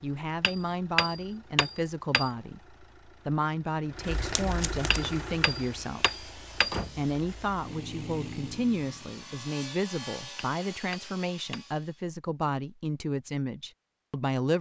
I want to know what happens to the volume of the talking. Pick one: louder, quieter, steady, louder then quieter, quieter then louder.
steady.